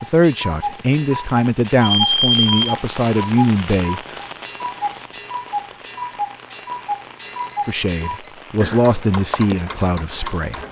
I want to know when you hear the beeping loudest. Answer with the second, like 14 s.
2 s.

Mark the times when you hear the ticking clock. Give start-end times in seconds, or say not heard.
0.0-10.6.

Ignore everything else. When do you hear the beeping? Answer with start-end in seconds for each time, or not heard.
1.8-2.7, 7.2-8.4.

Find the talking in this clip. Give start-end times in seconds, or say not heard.
0.0-4.2, 7.7-10.6.